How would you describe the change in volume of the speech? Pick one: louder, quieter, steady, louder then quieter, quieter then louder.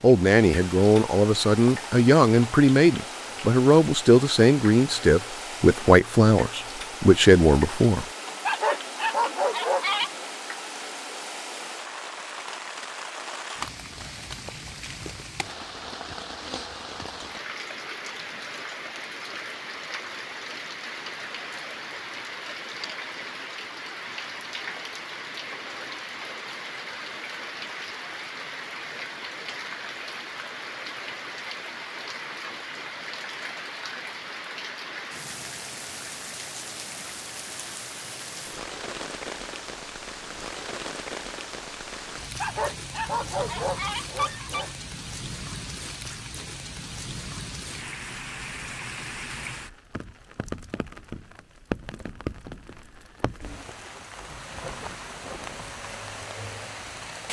steady.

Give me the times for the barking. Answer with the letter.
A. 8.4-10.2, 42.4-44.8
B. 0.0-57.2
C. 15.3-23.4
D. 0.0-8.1
A.